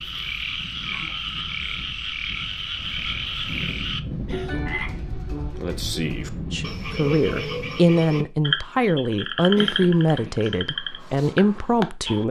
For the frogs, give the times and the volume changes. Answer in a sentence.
You can hear the frogs from 0.0 to 12.2 s, at a steady volume.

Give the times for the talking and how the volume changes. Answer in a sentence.
The talking can be heard from 6.5 to 12.2 s, at a steady volume.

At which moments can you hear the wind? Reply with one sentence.
You can hear the wind from 0.0 to 7.8 s.